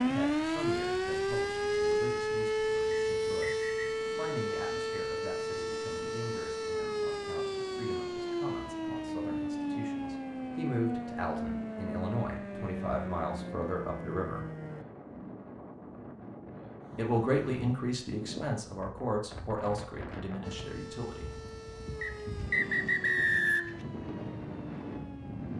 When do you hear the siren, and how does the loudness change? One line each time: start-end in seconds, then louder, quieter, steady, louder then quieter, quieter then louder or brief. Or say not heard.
0.0-14.8 quieter
20.4-25.5 steady.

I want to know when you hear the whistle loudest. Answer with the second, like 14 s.
23 s.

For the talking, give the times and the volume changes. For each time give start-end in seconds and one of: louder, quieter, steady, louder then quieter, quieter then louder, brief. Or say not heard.
0.0-14.4 louder
16.9-21.3 quieter.